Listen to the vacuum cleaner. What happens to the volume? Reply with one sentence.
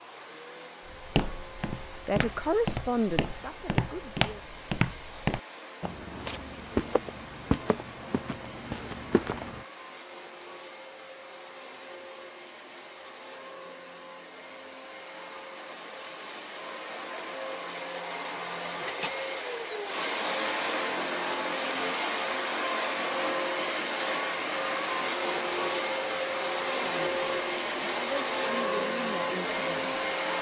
The loudness of the vacuum cleaner goes up.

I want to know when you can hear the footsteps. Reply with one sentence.
The footsteps can be heard from 0.8 to 9.7 s.